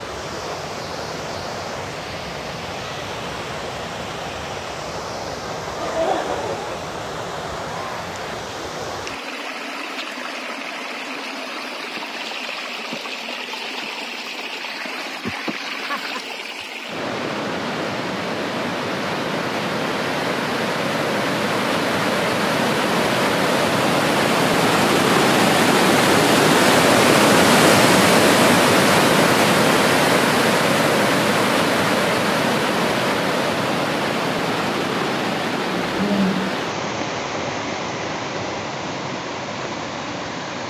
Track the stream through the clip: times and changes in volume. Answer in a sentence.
You can hear the stream from 0.0 to 40.6 s, getting louder then quieter.